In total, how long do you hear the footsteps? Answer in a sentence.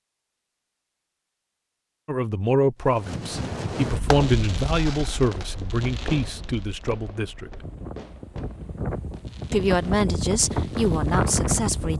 The footsteps can't be heard in this clip.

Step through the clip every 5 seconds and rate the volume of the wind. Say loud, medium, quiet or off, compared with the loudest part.
medium, medium, loud.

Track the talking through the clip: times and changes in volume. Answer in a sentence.
You can hear the talking from 2.0 to 7.6 s, getting quieter; and briefly from 9.5 to 11.9 s.